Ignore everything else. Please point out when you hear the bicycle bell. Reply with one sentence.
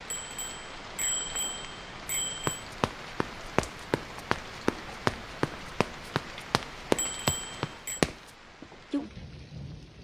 You can hear the bicycle bell from 0.1 to 2.6 s and from 7.0 to 8.0 s.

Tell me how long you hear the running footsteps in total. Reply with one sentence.
You can hear the running footsteps for 6 seconds altogether.